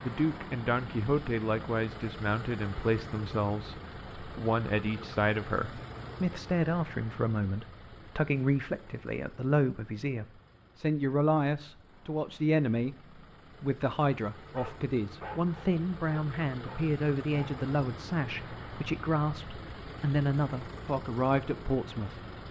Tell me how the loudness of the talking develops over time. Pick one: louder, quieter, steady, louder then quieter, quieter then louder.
steady.